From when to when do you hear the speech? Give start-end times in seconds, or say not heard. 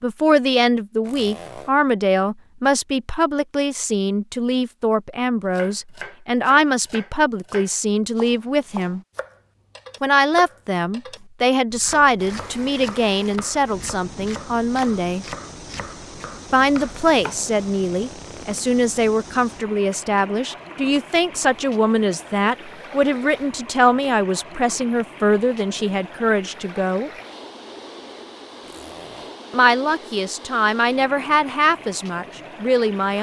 0.0-9.0, 10.0-15.2, 16.5-27.1, 29.5-33.1.